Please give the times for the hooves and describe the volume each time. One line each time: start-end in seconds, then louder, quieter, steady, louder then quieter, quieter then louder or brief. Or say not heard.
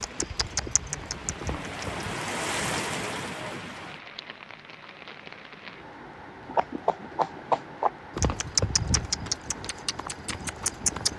0.0-2.0 brief
6.5-11.1 quieter.